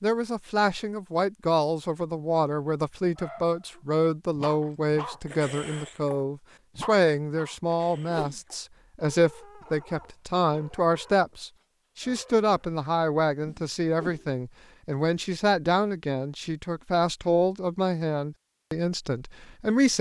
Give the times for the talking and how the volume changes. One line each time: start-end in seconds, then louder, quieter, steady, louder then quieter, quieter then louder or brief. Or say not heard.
0.0-19.9 steady.